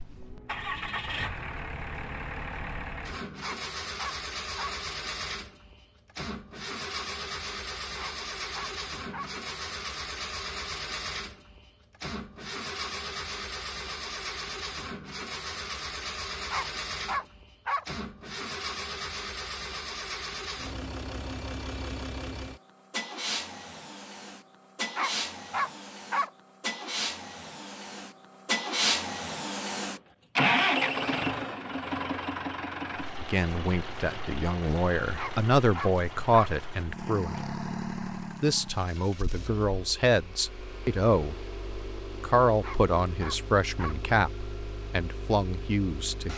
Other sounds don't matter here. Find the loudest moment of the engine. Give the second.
31 s.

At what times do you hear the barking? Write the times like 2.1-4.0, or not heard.
3.4-4.8, 8.0-9.3, 16.5-17.9, 24.9-26.3, 35.1-36.5, 42.6-44.0.